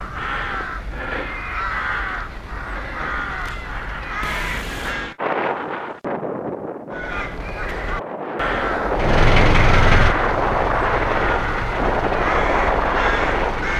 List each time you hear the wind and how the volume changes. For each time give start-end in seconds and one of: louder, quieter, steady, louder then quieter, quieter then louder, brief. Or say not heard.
5.2-13.7 louder.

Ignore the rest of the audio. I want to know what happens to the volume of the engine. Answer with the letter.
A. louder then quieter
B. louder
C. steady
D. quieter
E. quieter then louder
D.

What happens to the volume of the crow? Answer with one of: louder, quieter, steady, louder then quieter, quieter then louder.
steady.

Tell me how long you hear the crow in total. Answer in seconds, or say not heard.
12 s.